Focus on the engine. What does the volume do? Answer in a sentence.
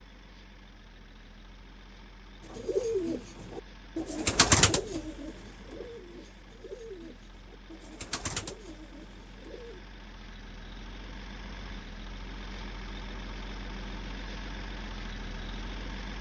The volume of the engine goes up.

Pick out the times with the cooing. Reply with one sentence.
You can hear the cooing from 2.5 to 9.8 s.